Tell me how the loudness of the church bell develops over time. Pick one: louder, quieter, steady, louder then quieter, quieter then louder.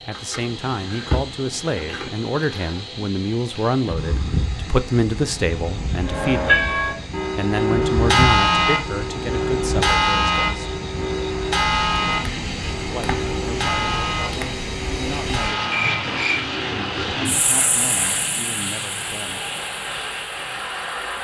quieter.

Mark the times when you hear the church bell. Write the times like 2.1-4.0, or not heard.
6.0-16.8.